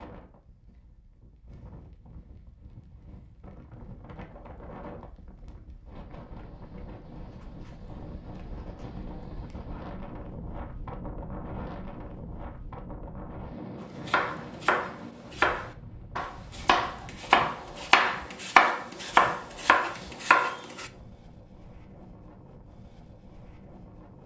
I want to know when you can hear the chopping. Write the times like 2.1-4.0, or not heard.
13.8-20.9.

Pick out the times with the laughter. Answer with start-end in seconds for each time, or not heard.
not heard.